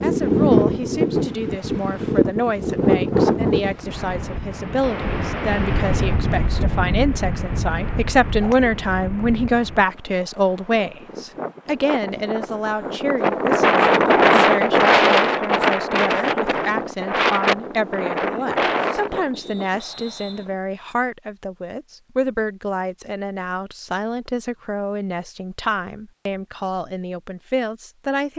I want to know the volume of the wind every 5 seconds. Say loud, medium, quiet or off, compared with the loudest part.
loud, medium, loud, loud, off, off.